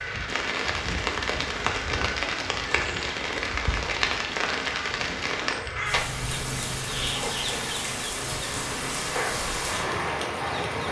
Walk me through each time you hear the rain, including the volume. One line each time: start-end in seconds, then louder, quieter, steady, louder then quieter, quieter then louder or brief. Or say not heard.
0.0-10.8 steady.